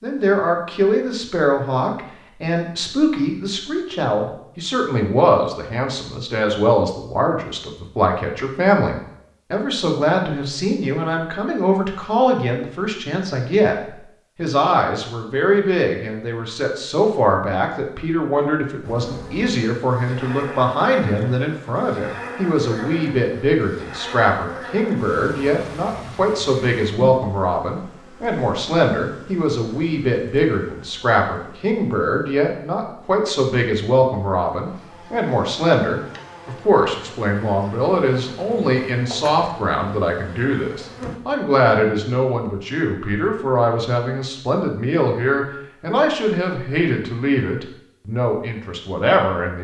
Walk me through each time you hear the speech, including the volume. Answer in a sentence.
You can hear the speech from 0.0 to 13.8 s, at a steady volume; and from 14.3 to 49.5 s, at a steady volume.